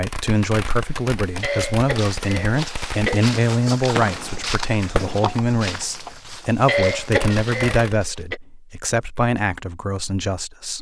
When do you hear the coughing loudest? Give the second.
7 s.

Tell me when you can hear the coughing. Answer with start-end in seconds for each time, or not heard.
1.4-3.3, 6.7-8.3.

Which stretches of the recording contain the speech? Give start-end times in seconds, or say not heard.
0.0-10.7.